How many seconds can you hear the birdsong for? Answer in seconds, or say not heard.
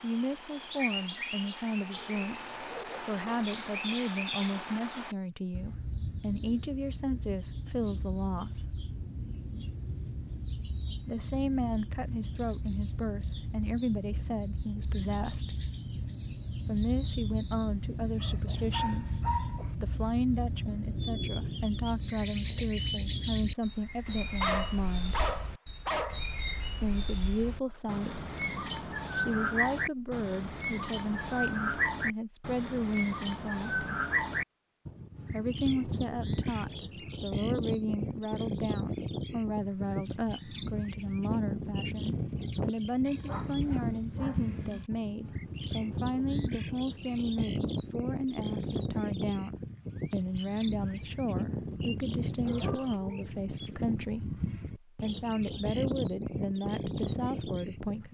58 s.